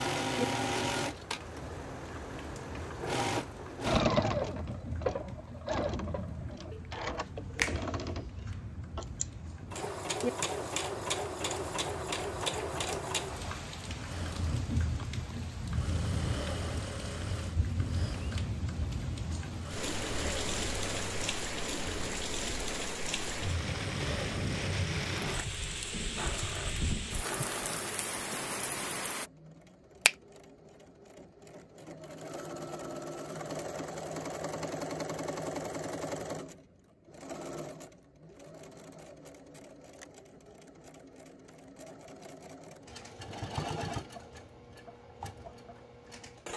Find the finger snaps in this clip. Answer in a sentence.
The finger snaps can be heard from 6.7 to 7.8 s.